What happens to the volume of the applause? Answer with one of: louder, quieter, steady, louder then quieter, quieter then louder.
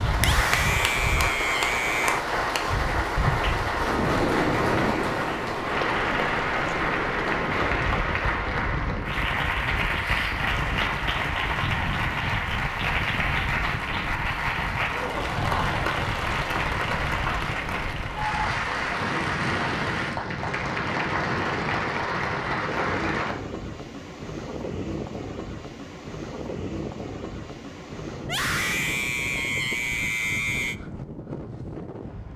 steady.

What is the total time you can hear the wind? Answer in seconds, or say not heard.
32 s.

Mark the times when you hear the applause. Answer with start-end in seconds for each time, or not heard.
0.0-23.4.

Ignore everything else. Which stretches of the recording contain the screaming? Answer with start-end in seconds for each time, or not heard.
0.1-2.2, 28.2-30.8.